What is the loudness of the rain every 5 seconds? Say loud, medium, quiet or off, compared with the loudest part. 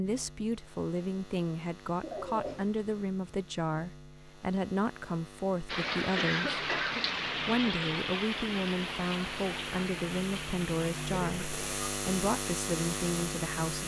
off, loud, medium.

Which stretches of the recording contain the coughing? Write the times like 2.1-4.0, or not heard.
2.0-2.8, 6.2-7.0, 11.2-11.6.